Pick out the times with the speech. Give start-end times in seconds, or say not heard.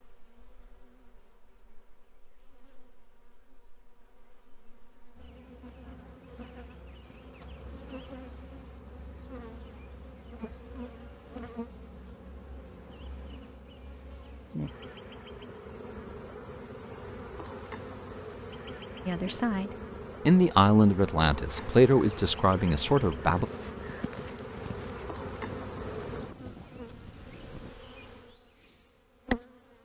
19.1-23.4.